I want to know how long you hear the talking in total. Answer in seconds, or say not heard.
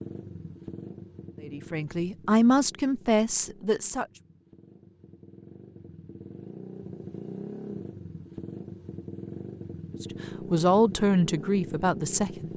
5 s.